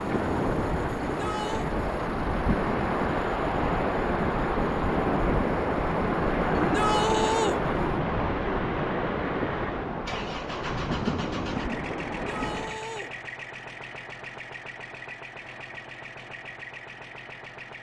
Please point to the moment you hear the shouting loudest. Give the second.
7 s.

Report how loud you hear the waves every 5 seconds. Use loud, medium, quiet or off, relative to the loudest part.
loud, loud, medium, off.